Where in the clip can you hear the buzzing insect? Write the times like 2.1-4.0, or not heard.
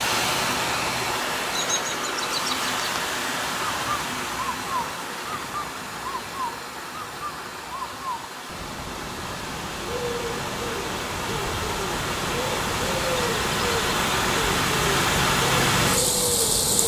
not heard.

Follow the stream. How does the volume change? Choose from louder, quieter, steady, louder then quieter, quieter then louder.
quieter then louder.